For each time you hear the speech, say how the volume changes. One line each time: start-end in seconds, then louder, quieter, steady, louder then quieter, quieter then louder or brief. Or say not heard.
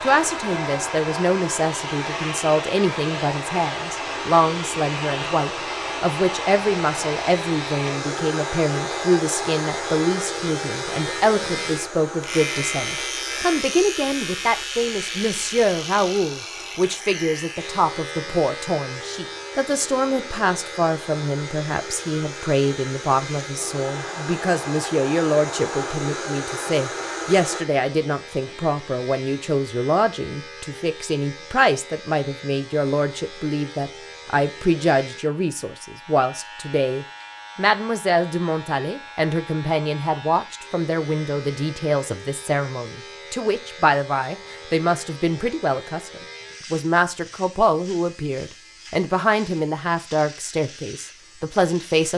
0.0-52.1 steady.